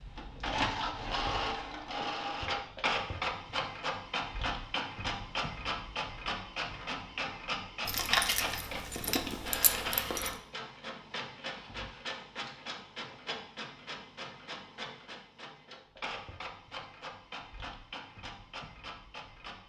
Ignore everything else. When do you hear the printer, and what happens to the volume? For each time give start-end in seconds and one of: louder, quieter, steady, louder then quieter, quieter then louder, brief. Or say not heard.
0.0-19.6 quieter.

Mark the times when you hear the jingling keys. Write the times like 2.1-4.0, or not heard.
7.8-10.3.